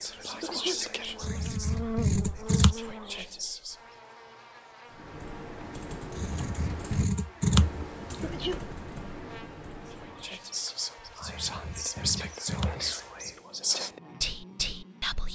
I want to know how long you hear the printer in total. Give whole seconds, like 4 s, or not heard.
not heard.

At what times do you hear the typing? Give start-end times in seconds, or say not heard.
4.8-10.3.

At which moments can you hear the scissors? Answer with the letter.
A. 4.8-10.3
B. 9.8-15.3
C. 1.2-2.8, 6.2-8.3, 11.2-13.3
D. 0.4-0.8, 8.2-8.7
C.